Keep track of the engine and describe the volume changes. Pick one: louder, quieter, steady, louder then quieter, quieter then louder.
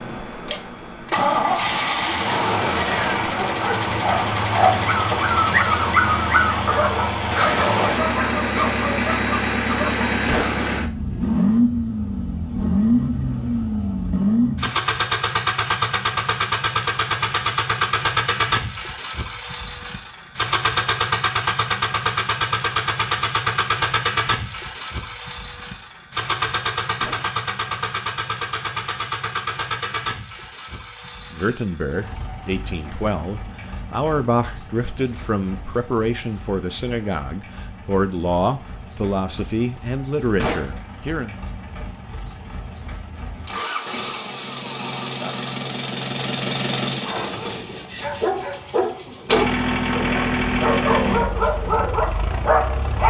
quieter then louder.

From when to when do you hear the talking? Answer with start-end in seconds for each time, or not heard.
31.3-41.4.